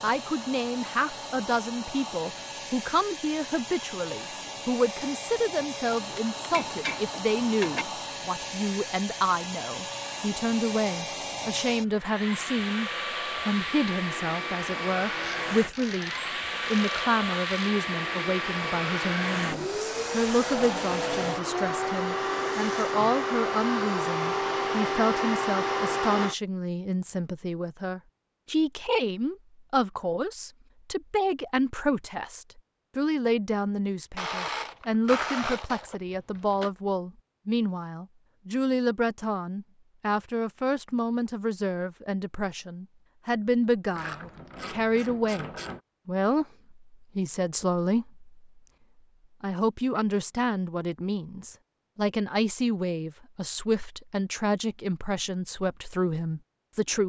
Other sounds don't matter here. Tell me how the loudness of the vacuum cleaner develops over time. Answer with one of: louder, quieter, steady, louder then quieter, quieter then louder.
louder.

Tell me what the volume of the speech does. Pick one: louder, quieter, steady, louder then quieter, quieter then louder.
steady.